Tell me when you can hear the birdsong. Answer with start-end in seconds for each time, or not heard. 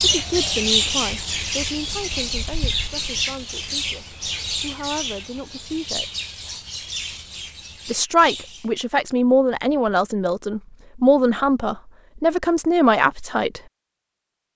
0.0-8.7.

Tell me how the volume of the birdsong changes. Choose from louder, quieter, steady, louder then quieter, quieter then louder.
quieter.